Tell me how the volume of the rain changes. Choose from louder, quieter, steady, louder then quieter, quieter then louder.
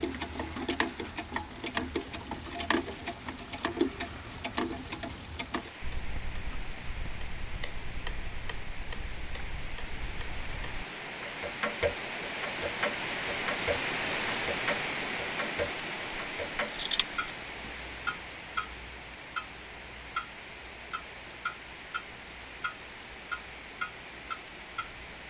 louder then quieter.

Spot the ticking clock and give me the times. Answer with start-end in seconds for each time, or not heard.
0.0-25.2.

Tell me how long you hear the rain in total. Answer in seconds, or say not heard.
25 s.